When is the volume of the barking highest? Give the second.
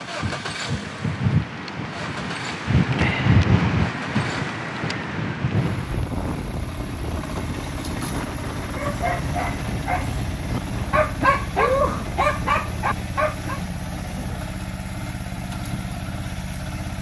12 s.